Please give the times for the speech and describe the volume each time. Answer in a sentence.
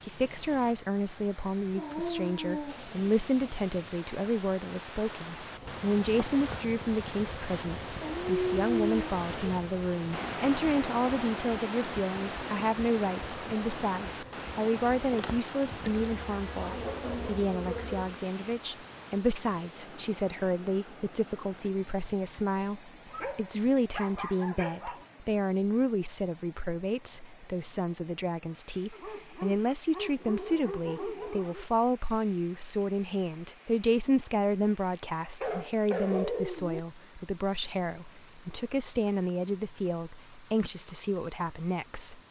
The speech can be heard from 0.0 to 42.2 s, at a steady volume.